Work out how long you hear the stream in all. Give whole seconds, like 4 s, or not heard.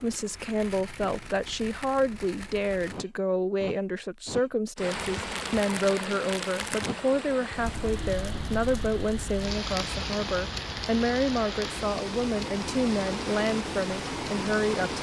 10 s.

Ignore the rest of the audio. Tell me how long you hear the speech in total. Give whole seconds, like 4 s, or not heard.
15 s.